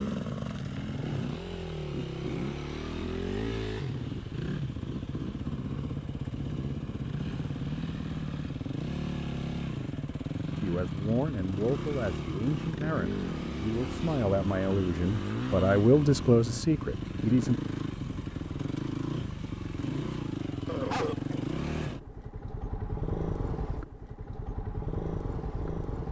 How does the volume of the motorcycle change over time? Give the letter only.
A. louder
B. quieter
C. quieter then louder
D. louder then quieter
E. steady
E.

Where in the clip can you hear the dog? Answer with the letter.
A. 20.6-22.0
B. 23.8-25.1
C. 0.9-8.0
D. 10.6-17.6
A.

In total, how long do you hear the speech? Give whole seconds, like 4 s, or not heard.
7 s.